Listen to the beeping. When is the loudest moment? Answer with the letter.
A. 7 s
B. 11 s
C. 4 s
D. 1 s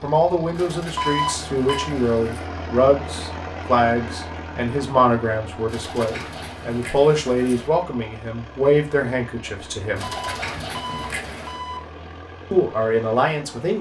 D.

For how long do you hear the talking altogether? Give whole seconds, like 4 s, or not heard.
11 s.